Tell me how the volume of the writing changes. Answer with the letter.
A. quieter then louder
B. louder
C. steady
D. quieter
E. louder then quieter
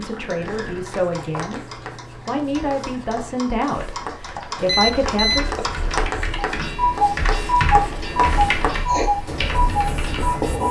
B.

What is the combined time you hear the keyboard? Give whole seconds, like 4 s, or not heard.
10 s.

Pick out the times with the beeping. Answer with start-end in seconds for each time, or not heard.
4.7-5.5.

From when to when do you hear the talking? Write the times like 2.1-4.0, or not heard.
0.0-5.5.